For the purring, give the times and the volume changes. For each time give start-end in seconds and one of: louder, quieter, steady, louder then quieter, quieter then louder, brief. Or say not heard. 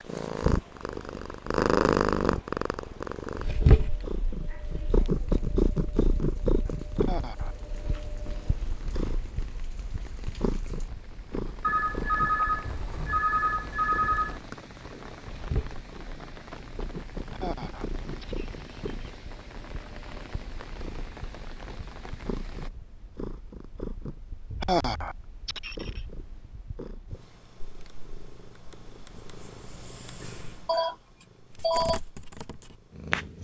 0.0-33.4 quieter.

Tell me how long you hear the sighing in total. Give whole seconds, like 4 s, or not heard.
4 s.